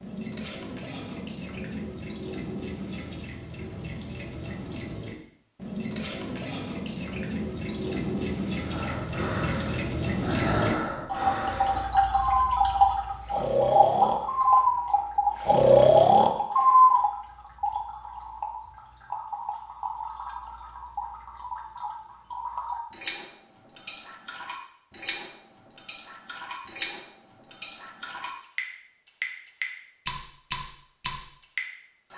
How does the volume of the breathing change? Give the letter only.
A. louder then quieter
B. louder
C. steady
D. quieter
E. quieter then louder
B.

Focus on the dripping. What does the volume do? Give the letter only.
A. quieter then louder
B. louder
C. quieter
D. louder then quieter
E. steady
D.